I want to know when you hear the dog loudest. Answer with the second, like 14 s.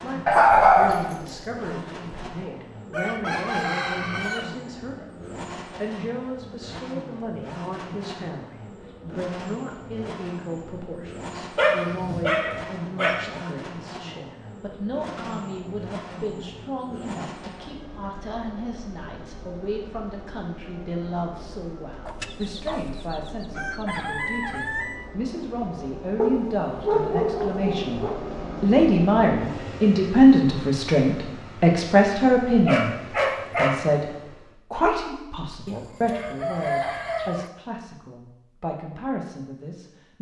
1 s.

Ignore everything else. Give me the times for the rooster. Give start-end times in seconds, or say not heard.
2.9-4.5, 22.1-25.1, 35.6-37.5.